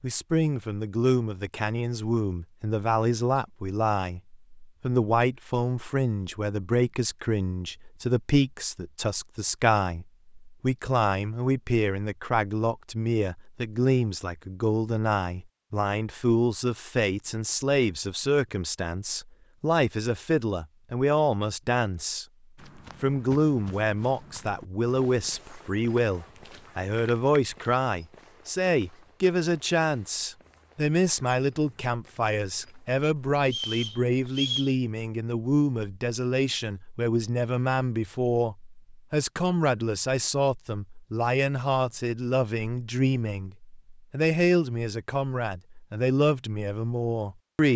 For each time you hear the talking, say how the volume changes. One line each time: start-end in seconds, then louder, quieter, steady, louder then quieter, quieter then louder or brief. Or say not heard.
0.0-22.2 steady
23.0-47.7 steady.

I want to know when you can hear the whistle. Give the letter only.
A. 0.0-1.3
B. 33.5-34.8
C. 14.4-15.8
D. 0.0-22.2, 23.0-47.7
B.